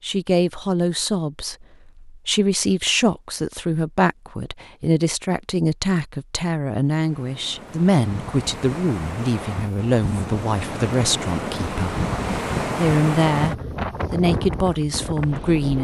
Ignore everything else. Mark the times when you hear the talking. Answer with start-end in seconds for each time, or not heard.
0.0-15.7.